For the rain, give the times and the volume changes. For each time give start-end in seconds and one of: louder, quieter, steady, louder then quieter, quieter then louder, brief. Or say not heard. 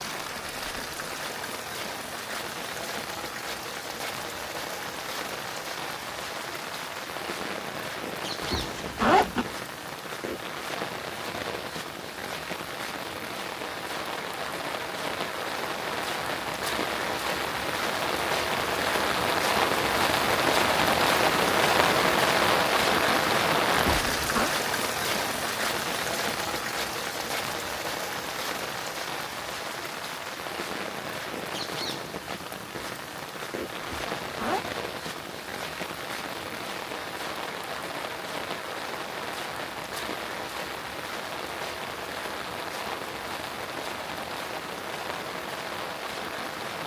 0.0-46.8 louder then quieter.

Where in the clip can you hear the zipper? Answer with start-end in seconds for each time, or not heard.
8.4-9.5, 23.8-24.5, 33.8-34.6.